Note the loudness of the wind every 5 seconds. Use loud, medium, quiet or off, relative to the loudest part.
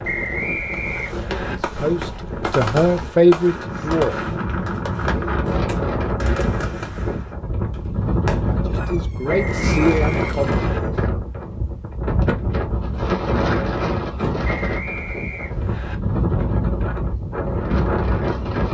medium, loud, loud, loud.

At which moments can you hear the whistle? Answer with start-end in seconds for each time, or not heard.
0.0-1.6, 9.2-10.8, 14.4-15.9.